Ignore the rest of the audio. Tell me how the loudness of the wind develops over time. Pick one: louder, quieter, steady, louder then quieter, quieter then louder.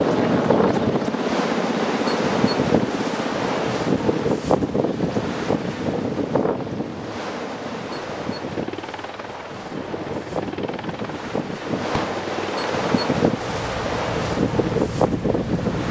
quieter then louder.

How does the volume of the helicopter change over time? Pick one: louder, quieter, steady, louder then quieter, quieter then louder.
quieter.